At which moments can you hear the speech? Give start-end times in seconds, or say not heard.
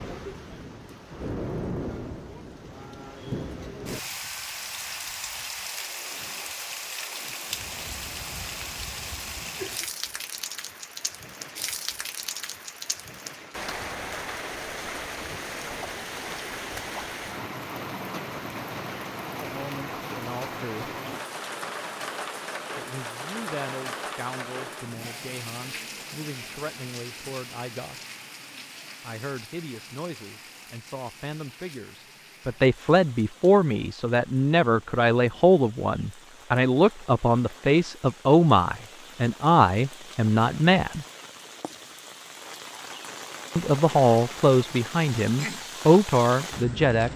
19.4-20.9, 22.8-28.1, 29.0-41.0, 43.5-47.1.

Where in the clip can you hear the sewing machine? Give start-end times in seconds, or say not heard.
not heard.